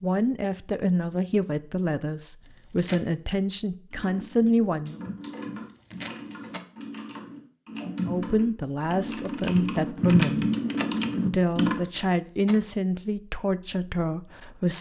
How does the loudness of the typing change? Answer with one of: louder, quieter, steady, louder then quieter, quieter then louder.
louder.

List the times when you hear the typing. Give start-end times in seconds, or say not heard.
3.9-11.8.